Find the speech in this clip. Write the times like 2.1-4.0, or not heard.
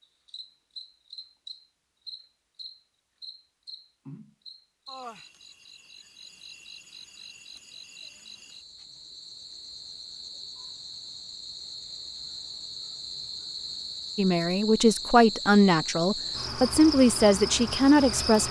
14.2-18.4.